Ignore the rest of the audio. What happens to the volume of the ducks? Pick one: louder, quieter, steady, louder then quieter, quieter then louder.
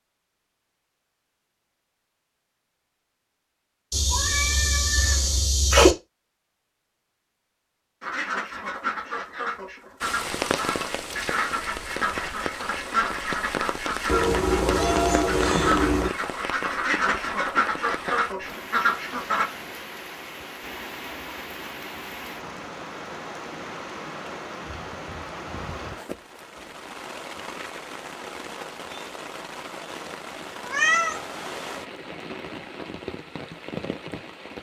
louder.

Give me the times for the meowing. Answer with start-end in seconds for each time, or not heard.
3.9-6.0, 14.1-16.1, 30.6-31.2.